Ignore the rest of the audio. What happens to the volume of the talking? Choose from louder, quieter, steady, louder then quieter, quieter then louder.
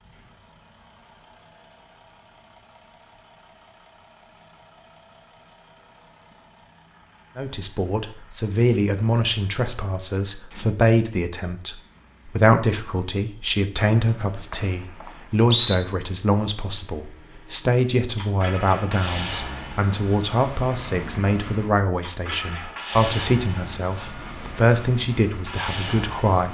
steady.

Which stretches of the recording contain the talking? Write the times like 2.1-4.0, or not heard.
7.3-26.4.